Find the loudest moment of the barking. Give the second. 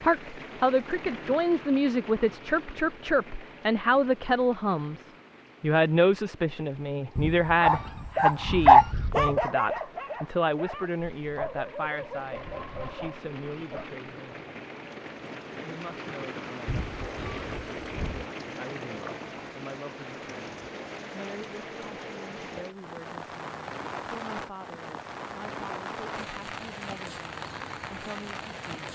9 s.